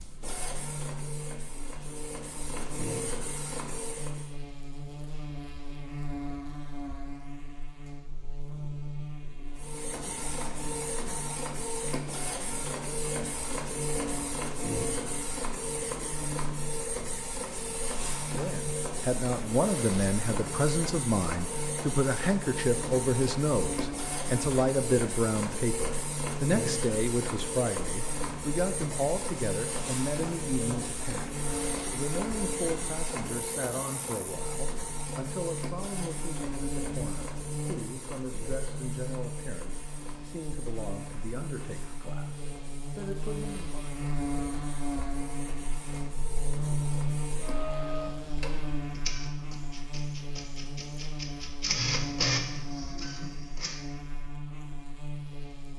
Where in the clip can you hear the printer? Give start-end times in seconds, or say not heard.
0.0-4.3, 9.6-53.8.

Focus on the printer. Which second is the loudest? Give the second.
52 s.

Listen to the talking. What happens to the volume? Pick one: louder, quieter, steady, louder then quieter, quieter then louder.
quieter.